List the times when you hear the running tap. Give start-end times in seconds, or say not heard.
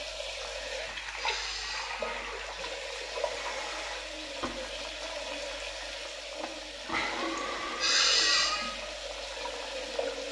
0.0-10.2.